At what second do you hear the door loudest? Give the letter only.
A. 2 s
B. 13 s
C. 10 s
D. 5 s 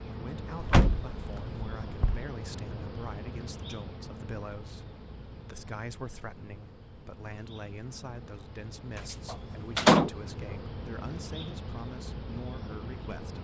C.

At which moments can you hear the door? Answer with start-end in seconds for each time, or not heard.
0.6-2.2, 9.2-10.1.